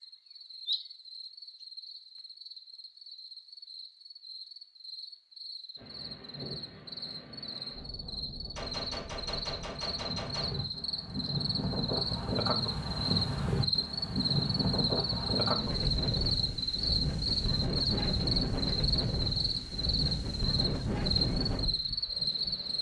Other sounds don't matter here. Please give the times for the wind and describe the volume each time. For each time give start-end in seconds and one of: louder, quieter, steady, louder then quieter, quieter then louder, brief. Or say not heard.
5.8-22.7 louder.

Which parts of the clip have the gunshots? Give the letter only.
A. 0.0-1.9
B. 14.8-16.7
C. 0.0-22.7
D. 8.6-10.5
D.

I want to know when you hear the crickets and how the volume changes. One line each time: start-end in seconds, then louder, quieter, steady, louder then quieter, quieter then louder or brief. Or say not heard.
0.0-22.7 louder.